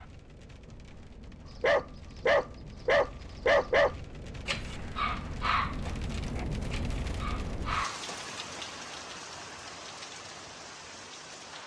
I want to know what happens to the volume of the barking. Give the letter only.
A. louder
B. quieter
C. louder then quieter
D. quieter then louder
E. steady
D.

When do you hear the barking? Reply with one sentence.
The barking can be heard from 1.6 to 8.7 s.